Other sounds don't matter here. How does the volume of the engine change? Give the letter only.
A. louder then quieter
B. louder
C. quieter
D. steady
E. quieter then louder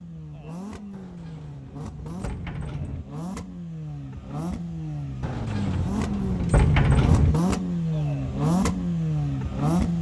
B.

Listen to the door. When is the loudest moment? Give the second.
7 s.